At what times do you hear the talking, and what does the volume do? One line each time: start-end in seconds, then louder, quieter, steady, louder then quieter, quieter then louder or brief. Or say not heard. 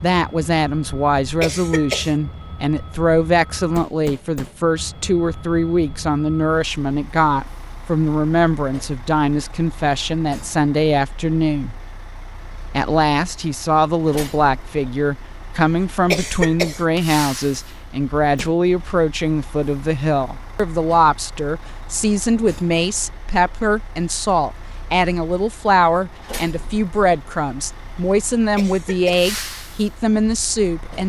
0.0-11.8 steady
12.8-31.0 steady.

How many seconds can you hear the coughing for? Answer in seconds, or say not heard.
2 s.